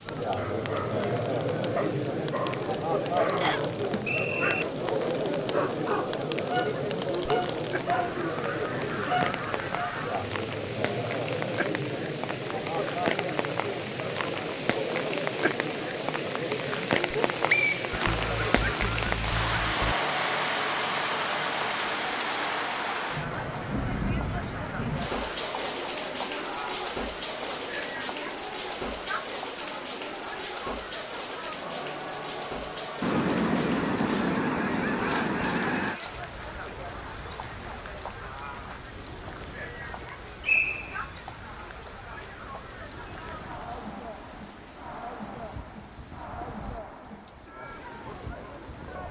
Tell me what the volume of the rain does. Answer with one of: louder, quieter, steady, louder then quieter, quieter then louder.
louder then quieter.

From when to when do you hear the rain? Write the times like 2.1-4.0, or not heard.
0.0-49.0.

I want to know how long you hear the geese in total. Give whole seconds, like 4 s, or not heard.
7 s.